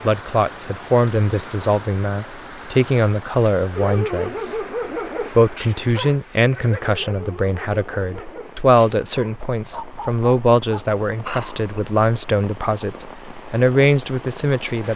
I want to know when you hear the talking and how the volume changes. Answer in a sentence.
You can hear the talking from 0.0 to 14.9 s, at a steady volume.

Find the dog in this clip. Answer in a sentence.
You can hear the dog from 3.8 to 11.7 s.